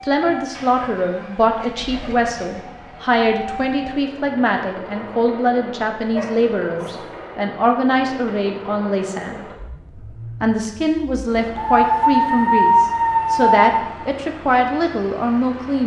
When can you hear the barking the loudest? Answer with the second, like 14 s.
13 s.